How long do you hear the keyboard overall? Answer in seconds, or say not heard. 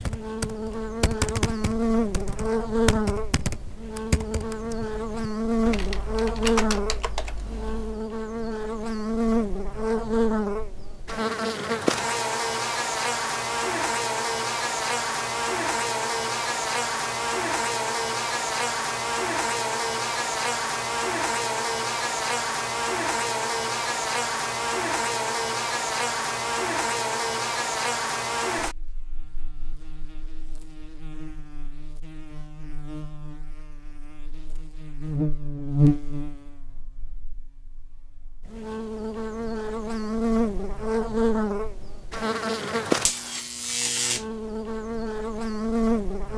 8 s.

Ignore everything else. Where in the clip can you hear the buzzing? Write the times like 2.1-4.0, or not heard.
0.0-46.3.